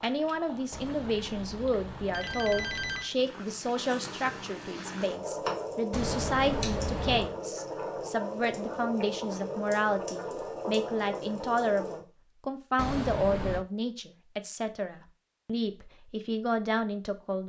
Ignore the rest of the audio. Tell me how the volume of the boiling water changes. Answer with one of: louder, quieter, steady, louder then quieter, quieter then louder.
louder.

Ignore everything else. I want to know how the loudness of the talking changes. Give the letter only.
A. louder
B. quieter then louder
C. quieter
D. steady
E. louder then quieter
D.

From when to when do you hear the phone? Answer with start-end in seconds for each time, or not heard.
0.7-3.1, 5.9-7.3, 12.8-13.7.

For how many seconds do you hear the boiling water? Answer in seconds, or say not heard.
12 s.